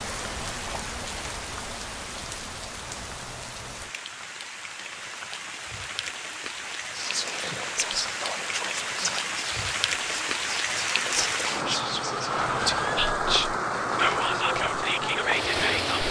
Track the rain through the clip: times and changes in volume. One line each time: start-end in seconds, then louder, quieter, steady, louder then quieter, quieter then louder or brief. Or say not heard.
0.0-16.0 louder.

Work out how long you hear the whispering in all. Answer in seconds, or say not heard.
9 s.